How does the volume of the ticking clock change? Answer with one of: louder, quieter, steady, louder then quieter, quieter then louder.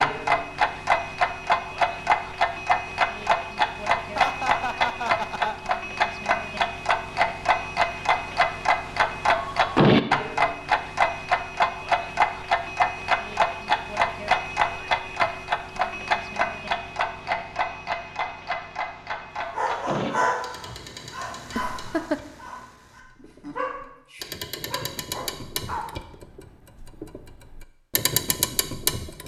quieter.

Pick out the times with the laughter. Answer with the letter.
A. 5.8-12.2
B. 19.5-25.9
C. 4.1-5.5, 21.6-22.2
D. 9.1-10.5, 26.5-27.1
C.